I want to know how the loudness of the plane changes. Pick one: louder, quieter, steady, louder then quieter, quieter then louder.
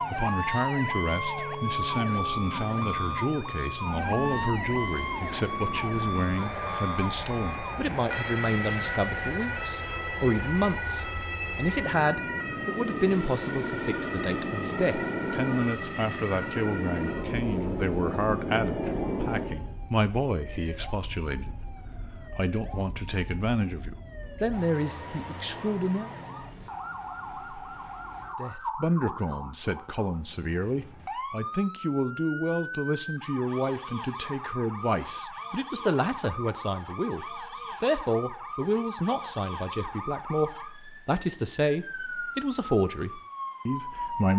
louder.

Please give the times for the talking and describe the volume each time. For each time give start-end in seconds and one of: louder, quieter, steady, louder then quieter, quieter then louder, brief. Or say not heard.
0.1-26.1 steady
28.4-44.3 steady.